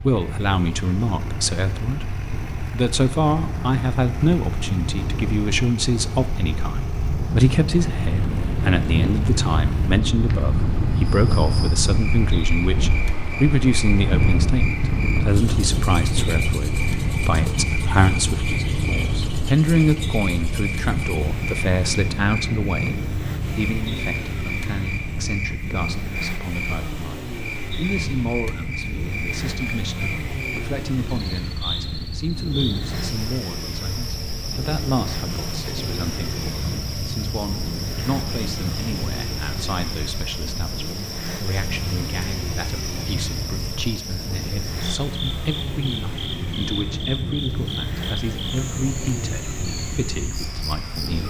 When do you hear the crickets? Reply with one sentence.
You can hear the crickets from 11.2 to 51.2 s.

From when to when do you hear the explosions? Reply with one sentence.
The explosions can't be heard in this clip.